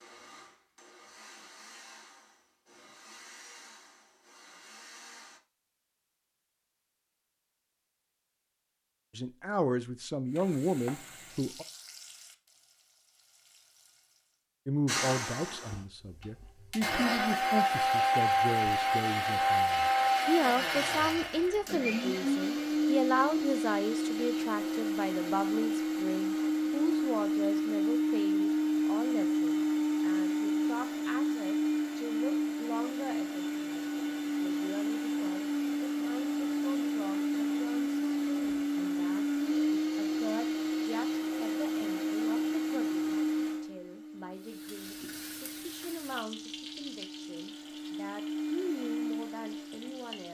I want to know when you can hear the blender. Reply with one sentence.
You can hear the blender from 0.0 to 5.4 s and from 14.8 to 50.3 s.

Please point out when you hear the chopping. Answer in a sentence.
The chopping can't be heard in this clip.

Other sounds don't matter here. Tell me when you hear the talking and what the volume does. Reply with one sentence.
The talking can be heard briefly from 9.2 to 11.7 s; and from 14.7 to 50.3 s, getting quieter.